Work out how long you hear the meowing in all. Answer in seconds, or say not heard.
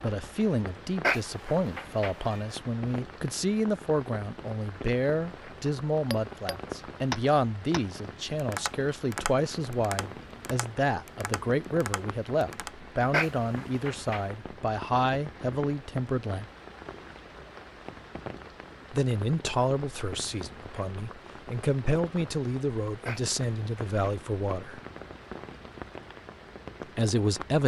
4 s.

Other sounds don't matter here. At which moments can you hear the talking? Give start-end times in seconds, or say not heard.
0.0-16.4, 18.9-24.8, 26.9-27.6.